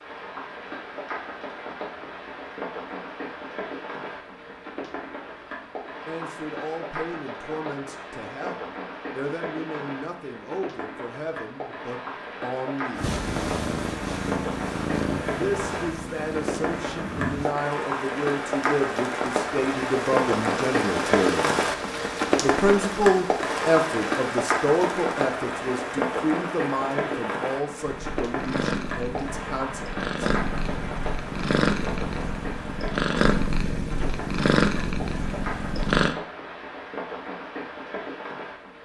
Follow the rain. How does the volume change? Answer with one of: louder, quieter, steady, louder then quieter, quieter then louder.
louder then quieter.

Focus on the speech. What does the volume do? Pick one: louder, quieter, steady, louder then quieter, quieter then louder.
louder then quieter.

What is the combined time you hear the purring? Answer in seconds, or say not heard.
13 s.